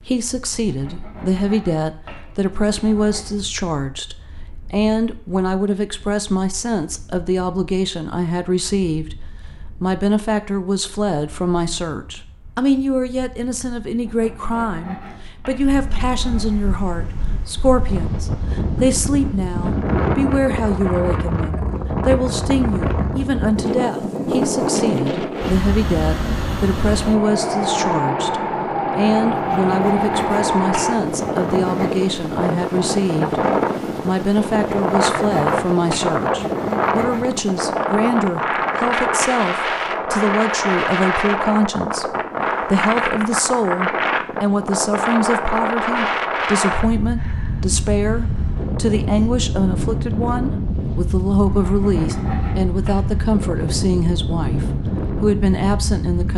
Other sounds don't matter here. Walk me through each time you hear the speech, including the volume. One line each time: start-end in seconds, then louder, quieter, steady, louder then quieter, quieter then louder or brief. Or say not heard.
0.0-9.2 steady
9.8-33.4 steady
34.0-56.3 steady.